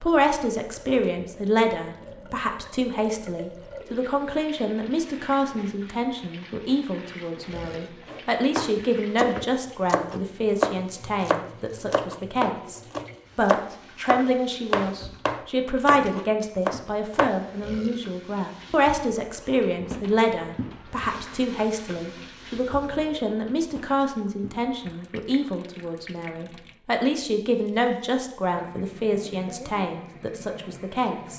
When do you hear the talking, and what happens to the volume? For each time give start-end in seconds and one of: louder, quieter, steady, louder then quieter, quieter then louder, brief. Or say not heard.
0.0-31.3 steady.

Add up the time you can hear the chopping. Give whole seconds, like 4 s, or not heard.
9 s.